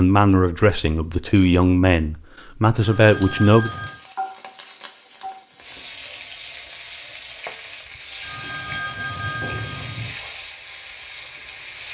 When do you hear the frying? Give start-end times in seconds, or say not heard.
3.0-11.8.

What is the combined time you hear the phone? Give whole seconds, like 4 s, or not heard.
3 s.